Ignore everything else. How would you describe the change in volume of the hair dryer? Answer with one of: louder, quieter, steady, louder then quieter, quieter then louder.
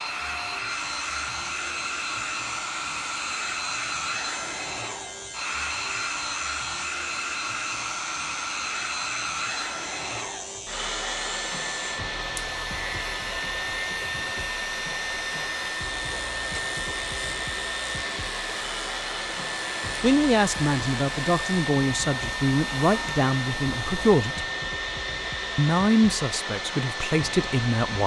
steady.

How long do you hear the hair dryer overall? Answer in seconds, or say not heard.
28 s.